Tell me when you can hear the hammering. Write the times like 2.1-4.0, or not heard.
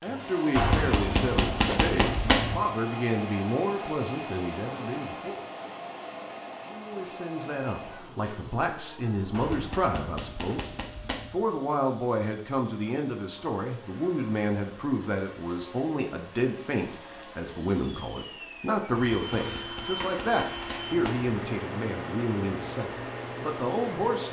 0.6-2.6, 9.3-11.4, 18.9-21.4.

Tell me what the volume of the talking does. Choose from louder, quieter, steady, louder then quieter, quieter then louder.
steady.